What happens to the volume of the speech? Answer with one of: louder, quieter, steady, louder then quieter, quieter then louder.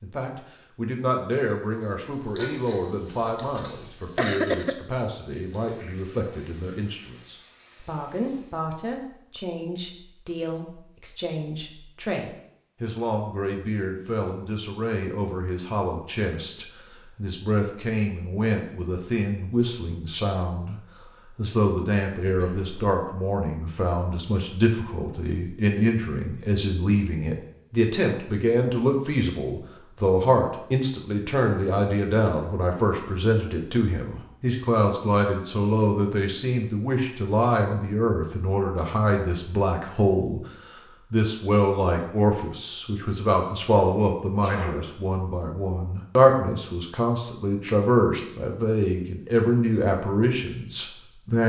louder.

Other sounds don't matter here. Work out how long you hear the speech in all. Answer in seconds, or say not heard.
51 s.